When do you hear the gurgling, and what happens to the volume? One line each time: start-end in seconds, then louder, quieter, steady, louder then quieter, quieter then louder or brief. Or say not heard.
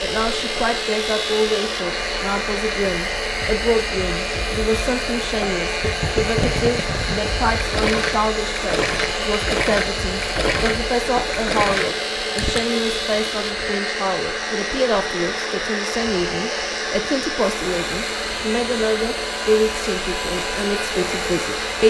5.7-12.7 steady.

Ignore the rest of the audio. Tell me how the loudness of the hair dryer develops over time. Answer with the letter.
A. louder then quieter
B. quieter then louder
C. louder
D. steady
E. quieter
D.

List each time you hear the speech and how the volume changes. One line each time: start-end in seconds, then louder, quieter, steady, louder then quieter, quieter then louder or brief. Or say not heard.
0.0-21.8 steady.